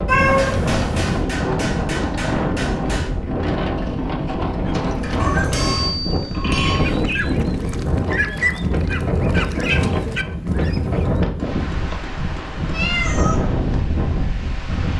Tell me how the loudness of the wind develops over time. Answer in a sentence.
The volume of the wind stays about the same.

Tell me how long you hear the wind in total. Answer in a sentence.
You can hear the wind for 15 seconds altogether.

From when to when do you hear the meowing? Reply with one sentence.
The meowing can be heard from 0.1 to 1.2 s, from 5.2 to 5.7 s and from 12.7 to 13.4 s.